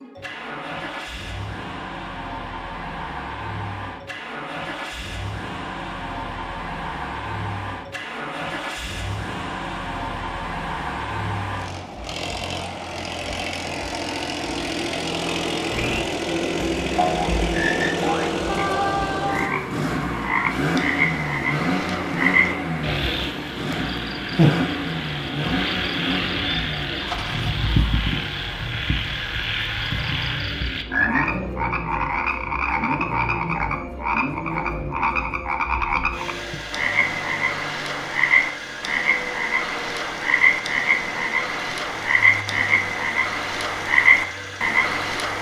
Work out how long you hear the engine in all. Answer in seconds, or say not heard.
45 s.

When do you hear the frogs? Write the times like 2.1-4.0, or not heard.
15.7-45.3.